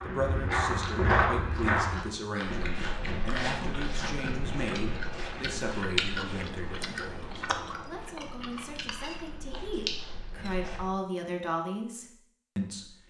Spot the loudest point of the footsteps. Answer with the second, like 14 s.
1 s.